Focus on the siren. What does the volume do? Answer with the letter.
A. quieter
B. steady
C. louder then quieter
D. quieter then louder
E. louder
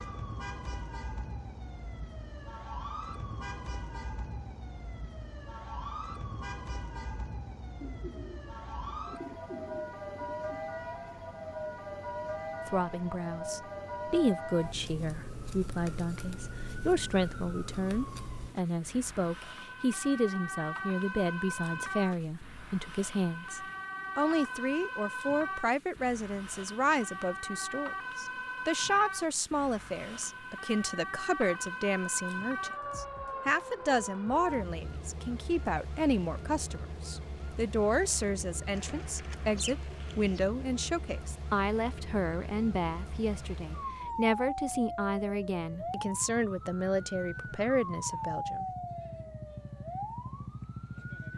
B.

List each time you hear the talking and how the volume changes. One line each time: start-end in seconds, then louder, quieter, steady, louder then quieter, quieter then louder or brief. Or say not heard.
12.7-48.6 steady.